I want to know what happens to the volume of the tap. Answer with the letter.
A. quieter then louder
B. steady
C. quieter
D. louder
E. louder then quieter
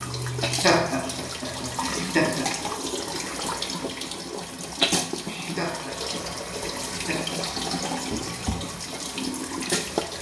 B.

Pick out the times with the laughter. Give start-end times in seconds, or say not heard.
0.6-3.4, 5.5-7.4.